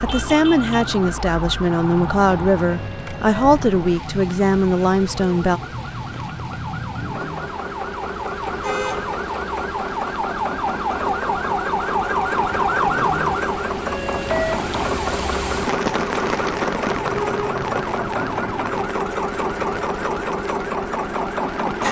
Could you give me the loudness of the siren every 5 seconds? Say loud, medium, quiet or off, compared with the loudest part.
medium, medium, loud, medium, medium.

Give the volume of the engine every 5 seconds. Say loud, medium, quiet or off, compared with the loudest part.
medium, medium, loud, loud, loud.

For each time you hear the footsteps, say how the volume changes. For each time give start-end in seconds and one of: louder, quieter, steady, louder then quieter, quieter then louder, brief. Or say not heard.
not heard.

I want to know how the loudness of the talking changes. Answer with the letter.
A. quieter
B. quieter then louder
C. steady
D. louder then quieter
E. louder
C.